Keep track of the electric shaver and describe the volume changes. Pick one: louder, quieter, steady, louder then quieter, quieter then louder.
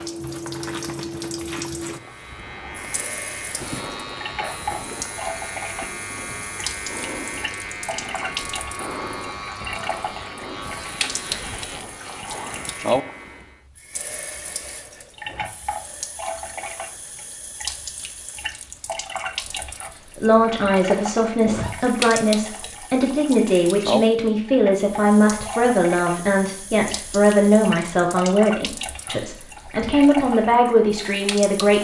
steady.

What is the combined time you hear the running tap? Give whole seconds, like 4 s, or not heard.
32 s.